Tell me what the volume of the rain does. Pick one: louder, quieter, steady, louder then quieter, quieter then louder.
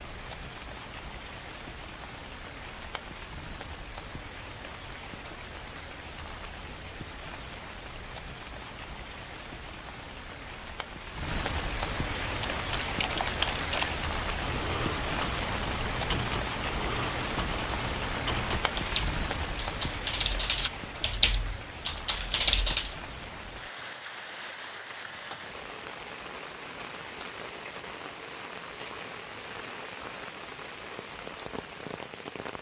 louder then quieter.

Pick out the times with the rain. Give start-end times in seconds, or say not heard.
0.0-32.5.